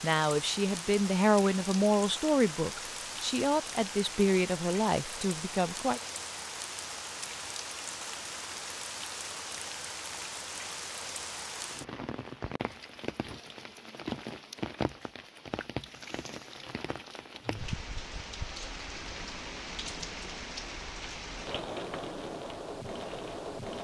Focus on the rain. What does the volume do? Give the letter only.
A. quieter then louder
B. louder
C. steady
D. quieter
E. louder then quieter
C.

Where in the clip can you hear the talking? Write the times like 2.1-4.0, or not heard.
0.0-6.0.